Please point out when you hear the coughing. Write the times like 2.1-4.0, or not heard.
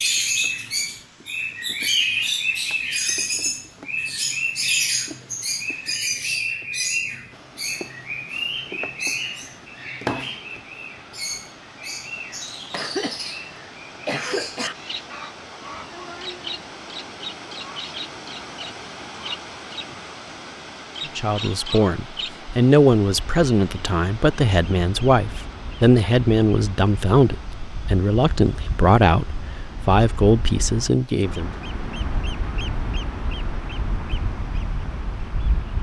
12.7-14.8.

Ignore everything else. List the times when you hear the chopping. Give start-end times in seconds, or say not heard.
not heard.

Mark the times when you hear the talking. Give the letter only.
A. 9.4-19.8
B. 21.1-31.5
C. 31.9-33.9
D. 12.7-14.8
B.